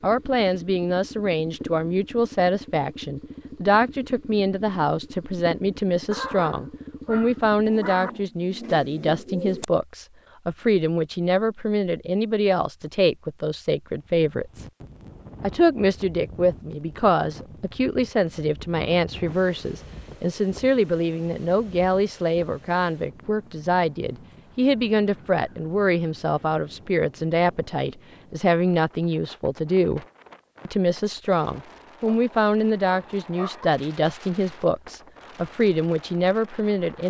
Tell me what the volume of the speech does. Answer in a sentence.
The loudness of the speech stays about the same.